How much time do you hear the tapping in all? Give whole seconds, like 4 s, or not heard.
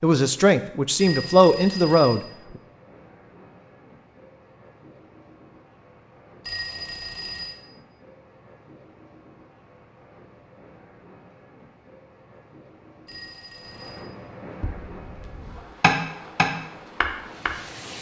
3 s.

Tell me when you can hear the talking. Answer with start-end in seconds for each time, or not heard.
0.0-2.2.